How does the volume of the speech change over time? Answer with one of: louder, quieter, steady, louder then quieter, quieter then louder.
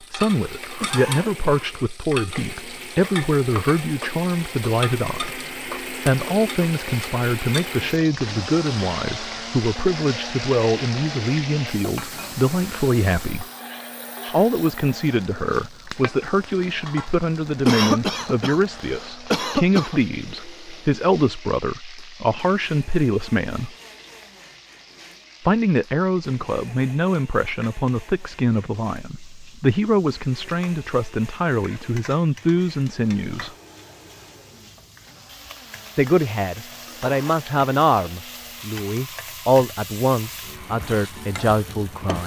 steady.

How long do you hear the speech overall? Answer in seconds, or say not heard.
37 s.